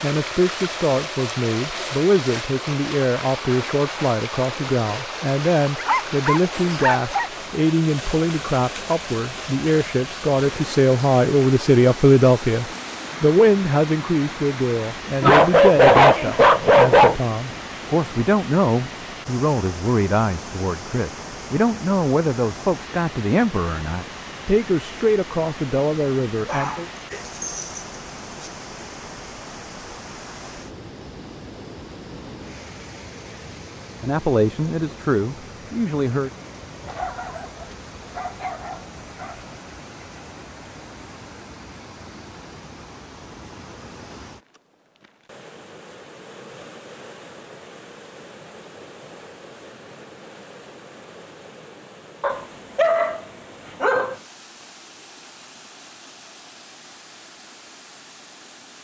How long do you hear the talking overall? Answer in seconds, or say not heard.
29 s.